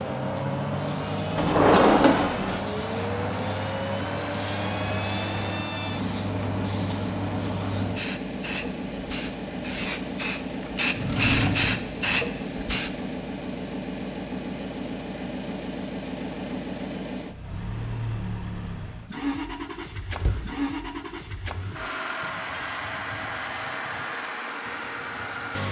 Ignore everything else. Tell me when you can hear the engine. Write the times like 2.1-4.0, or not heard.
0.0-25.6.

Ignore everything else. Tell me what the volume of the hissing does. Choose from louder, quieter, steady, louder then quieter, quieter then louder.
louder.